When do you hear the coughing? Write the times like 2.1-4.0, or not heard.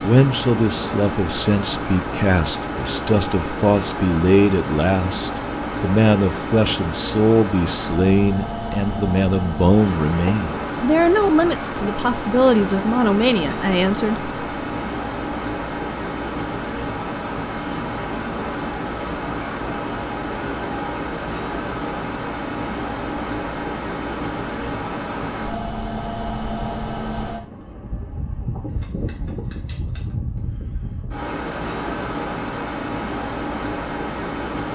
not heard.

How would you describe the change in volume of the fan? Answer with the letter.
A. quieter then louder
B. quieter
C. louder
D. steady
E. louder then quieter
D.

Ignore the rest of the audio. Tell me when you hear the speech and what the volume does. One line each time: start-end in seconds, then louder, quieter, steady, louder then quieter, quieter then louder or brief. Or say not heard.
0.0-14.3 steady.